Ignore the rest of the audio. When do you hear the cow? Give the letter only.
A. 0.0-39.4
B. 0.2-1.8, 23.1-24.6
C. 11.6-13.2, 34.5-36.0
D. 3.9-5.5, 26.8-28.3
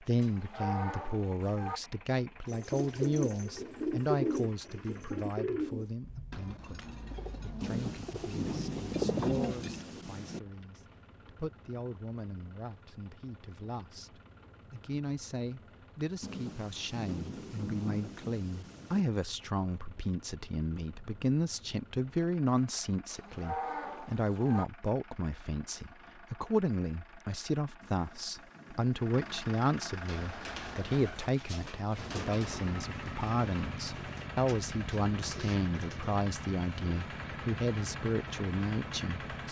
B.